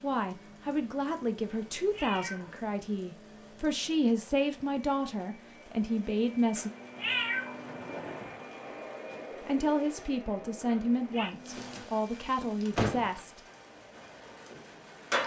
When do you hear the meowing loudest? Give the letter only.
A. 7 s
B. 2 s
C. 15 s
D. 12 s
A.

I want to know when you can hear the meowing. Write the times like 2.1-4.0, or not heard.
1.4-2.6, 6.5-8.4, 10.7-11.3.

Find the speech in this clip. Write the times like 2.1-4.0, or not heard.
0.0-6.7, 9.4-13.4.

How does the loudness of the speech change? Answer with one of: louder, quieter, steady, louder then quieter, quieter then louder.
steady.